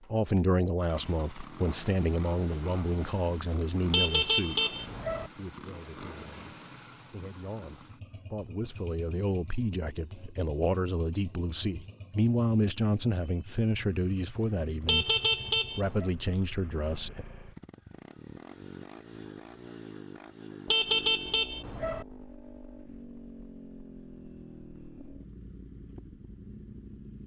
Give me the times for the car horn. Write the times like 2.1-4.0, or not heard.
3.9-5.3, 14.8-16.1, 20.6-22.1.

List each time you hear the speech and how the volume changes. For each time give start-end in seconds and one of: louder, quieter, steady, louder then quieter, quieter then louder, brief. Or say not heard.
0.1-15.2 quieter then louder
15.8-17.2 brief.